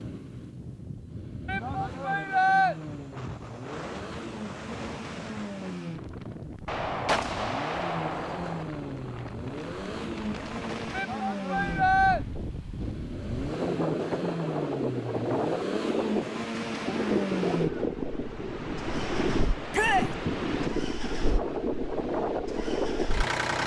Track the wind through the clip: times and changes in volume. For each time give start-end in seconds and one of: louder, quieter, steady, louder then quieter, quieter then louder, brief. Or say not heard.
0.0-23.6 louder.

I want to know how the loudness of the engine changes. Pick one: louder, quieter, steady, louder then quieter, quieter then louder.
louder then quieter.